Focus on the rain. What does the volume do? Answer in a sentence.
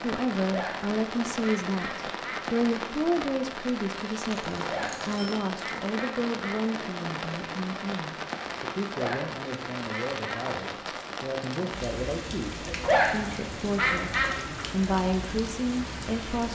The loudness of the rain stays about the same.